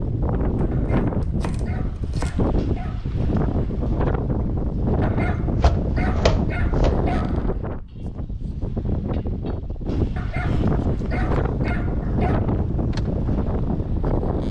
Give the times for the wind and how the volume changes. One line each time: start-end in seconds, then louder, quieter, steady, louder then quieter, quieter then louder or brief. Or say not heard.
0.0-14.4 steady.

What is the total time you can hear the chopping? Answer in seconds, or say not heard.
5 s.